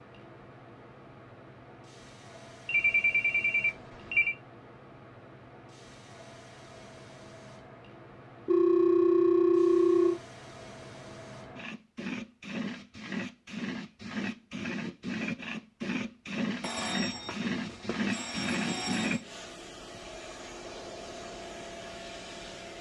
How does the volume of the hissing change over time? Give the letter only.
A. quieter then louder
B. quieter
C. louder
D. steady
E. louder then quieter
C.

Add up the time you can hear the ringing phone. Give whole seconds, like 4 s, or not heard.
6 s.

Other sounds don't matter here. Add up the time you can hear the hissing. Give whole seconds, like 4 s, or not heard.
23 s.